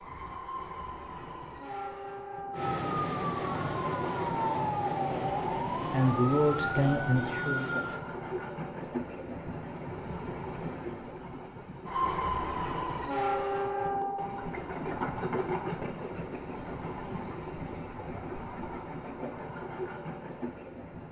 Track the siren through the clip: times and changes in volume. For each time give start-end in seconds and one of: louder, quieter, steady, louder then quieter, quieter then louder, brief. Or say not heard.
2.5-8.0 steady.